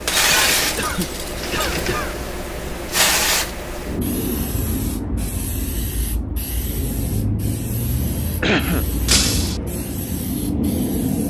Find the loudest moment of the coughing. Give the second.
9 s.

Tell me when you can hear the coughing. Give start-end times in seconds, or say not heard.
0.2-2.8, 8.4-9.3.